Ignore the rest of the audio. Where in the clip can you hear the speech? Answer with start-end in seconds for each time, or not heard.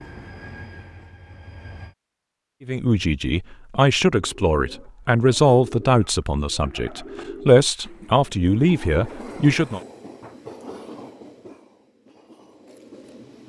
2.6-9.8.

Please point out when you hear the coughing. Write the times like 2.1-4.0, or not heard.
not heard.